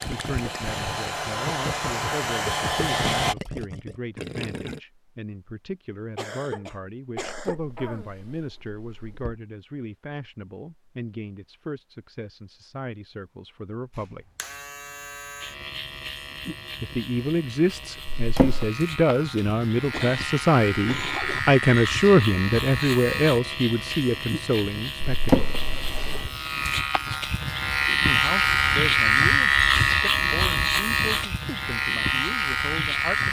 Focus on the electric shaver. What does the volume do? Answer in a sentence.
The loudness of the electric shaver goes up.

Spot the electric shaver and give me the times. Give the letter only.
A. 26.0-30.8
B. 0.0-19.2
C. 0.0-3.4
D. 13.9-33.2
D.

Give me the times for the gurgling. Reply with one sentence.
The gurgling can be heard from 0.0 to 4.8 s.